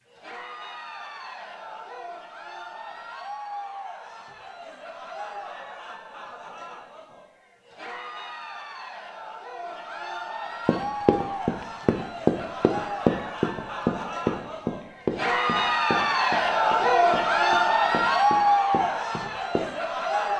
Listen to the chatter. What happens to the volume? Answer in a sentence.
The volume of the chatter goes up.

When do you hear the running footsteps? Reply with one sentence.
You can hear the running footsteps from 10.7 to 19.6 s.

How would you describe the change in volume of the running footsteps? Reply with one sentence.
The volume of the running footsteps goes down.